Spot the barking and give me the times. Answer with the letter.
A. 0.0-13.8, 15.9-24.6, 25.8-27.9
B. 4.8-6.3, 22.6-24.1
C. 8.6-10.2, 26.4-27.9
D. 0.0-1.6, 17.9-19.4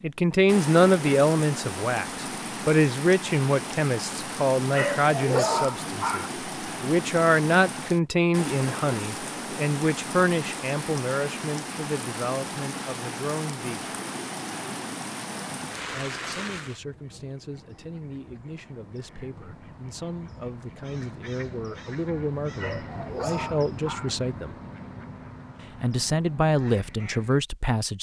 B.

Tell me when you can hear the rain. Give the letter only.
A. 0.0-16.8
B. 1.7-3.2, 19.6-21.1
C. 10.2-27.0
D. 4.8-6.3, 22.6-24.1
A.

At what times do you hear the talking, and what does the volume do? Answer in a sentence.
The talking can be heard from 0.0 to 13.8 s, getting quieter; from 15.9 to 24.6 s, getting louder; and briefly from 25.8 to 27.9 s.